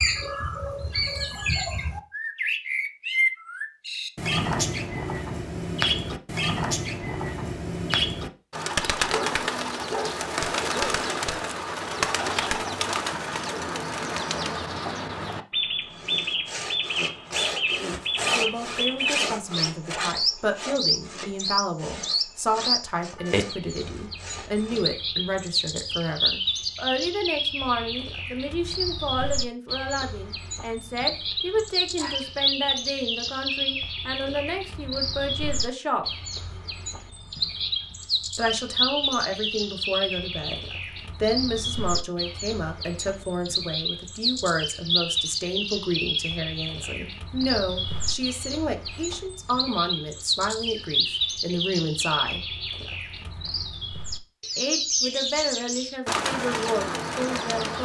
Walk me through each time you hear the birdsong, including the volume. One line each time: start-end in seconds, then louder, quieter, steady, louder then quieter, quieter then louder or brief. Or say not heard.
0.0-57.8 steady.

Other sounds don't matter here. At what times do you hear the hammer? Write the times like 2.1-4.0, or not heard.
not heard.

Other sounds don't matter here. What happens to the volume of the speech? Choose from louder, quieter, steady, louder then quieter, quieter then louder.
steady.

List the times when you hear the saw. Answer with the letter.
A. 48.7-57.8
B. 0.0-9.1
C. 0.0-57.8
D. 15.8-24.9
D.